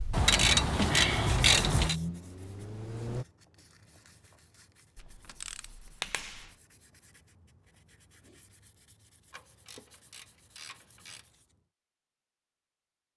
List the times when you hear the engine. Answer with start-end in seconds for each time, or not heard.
0.0-3.2.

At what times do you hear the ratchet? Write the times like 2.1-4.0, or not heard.
0.1-1.9, 5.0-6.5, 9.3-11.2.